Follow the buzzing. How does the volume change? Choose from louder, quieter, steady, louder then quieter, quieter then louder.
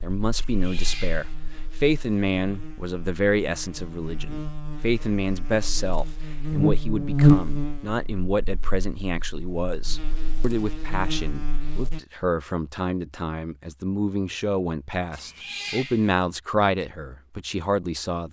louder then quieter.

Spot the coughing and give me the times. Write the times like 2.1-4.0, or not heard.
not heard.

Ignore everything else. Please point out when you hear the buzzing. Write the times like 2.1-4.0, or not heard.
0.0-12.0.